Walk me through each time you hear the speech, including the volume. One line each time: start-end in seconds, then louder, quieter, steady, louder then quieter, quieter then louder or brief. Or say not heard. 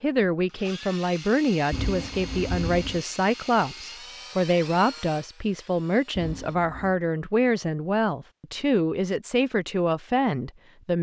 0.0-10.9 steady.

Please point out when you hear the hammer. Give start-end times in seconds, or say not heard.
not heard.